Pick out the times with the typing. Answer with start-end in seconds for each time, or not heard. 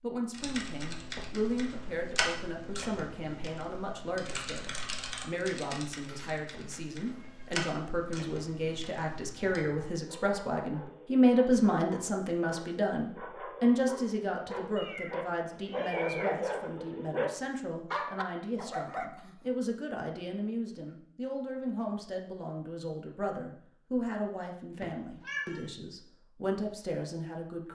0.3-9.6.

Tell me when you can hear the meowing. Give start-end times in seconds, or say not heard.
6.0-7.6, 14.8-16.4, 24.8-25.6.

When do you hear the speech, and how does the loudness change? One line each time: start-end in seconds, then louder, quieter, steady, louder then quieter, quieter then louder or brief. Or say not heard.
0.0-27.7 louder then quieter.